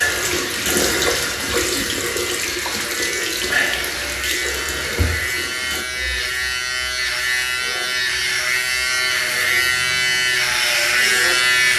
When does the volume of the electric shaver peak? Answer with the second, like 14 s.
11 s.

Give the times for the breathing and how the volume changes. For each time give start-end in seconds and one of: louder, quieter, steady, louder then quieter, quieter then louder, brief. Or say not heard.
not heard.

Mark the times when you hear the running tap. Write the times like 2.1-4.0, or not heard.
0.0-5.8.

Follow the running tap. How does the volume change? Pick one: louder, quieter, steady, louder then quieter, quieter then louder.
quieter.